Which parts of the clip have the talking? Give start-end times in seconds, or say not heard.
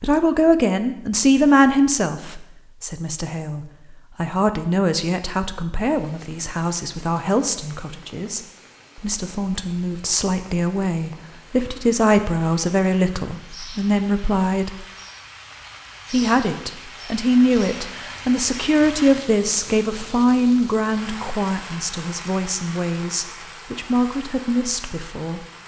0.0-8.4, 9.0-14.8, 16.1-25.4.